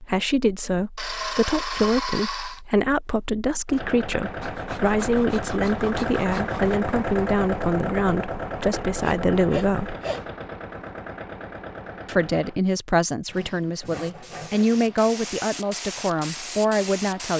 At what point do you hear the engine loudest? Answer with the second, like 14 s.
7 s.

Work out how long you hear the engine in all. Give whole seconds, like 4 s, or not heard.
9 s.